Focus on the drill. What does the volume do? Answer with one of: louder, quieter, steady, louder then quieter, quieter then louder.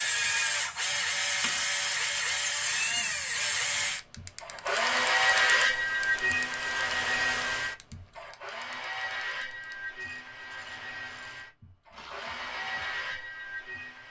quieter.